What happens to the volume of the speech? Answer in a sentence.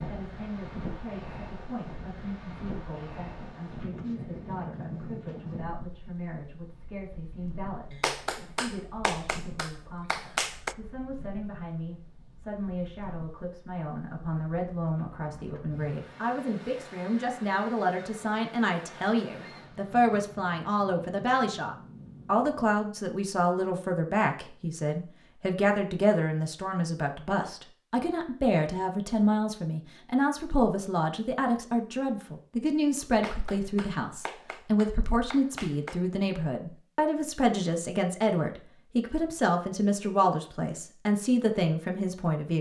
The volume of the speech goes up.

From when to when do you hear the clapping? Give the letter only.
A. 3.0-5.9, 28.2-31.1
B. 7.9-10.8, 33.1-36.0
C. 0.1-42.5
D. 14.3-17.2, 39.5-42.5
B.